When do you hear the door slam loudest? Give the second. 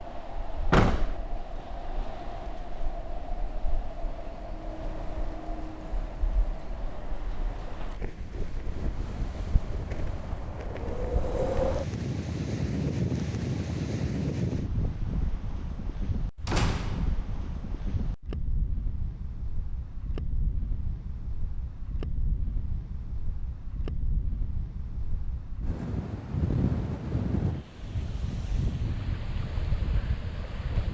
1 s.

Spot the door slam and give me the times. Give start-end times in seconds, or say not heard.
0.7-1.1, 16.4-17.3.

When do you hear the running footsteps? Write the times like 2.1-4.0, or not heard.
not heard.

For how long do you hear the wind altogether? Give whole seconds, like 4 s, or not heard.
31 s.